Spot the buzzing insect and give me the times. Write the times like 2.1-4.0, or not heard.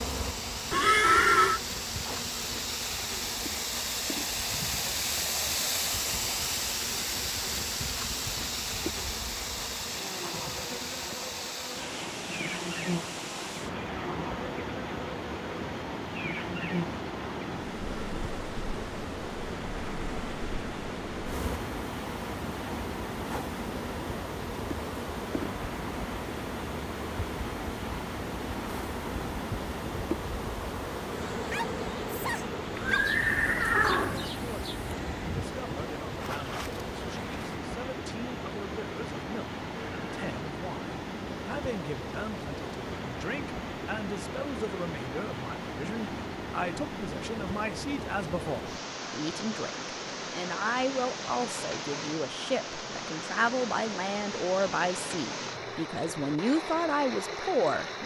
0.0-37.5.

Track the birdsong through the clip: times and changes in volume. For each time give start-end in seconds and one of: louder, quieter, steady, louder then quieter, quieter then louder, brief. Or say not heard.
not heard.